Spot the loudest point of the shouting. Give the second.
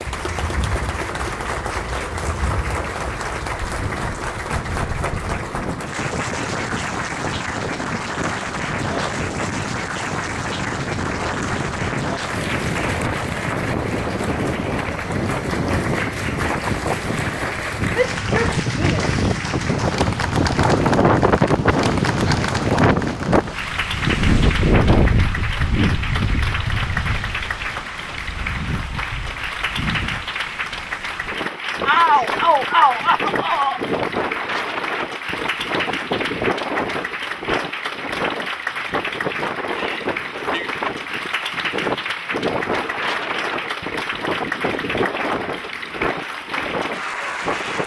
32 s.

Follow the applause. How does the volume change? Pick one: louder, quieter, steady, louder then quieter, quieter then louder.
steady.